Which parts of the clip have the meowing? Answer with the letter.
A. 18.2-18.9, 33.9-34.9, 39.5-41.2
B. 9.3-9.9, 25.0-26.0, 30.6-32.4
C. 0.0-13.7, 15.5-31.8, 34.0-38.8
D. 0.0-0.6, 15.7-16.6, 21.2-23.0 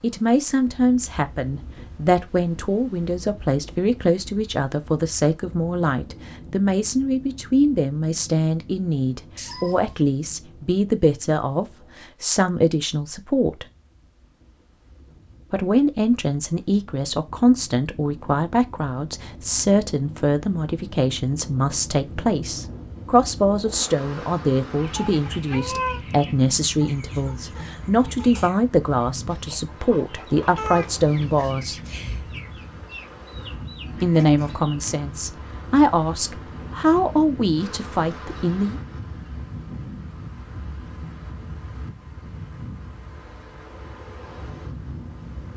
B.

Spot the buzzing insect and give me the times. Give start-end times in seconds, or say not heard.
not heard.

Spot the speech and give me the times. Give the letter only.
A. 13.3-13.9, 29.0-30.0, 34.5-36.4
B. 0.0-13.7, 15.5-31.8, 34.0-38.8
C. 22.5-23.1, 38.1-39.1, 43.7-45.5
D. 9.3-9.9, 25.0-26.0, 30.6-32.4
B.